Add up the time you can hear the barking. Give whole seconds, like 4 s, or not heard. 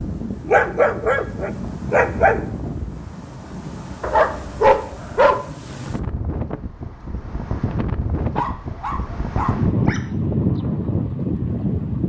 5 s.